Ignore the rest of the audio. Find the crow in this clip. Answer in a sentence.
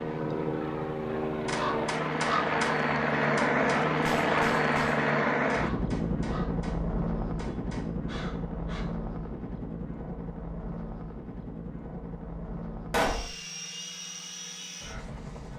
You can hear the crow from 1.4 to 8.8 s.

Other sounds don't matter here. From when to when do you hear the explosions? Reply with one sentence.
You can hear the explosions from 12.9 to 13.3 s.